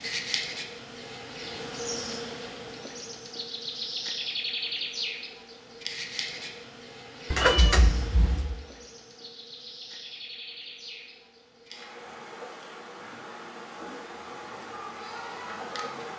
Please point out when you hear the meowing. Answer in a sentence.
You can hear the meowing from 7.3 to 8.6 s.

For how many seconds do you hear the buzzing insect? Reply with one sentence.
The buzzing insect can be heard for 16 seconds in total.